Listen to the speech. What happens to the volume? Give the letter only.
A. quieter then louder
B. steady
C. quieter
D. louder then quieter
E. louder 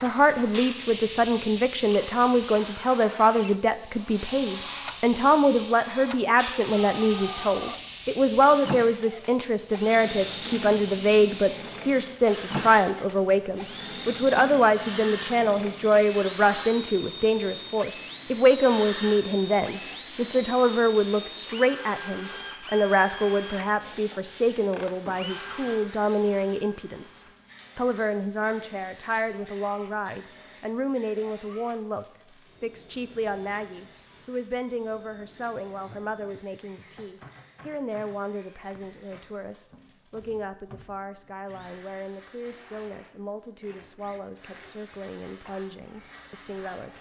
C.